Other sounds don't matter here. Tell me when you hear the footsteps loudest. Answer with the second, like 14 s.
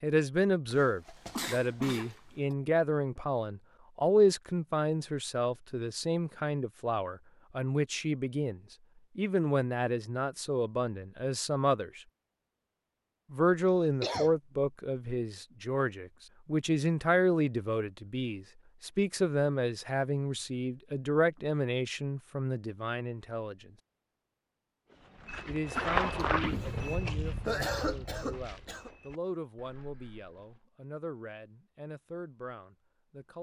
26 s.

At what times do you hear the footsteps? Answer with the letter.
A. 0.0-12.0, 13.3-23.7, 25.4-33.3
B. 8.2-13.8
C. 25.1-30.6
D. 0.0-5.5
C.